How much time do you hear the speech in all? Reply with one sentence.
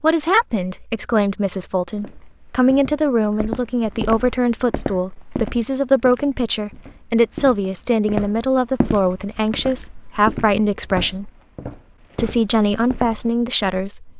You can hear the speech for 13 seconds altogether.